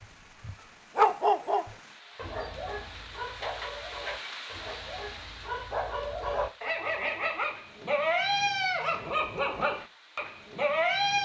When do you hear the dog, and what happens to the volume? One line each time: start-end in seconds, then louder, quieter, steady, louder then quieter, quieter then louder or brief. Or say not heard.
0.0-11.2 quieter then louder.